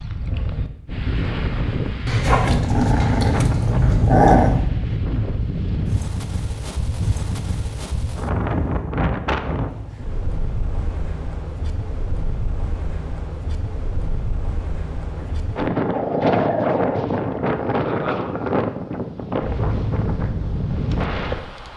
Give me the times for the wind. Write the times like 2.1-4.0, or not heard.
0.0-21.7.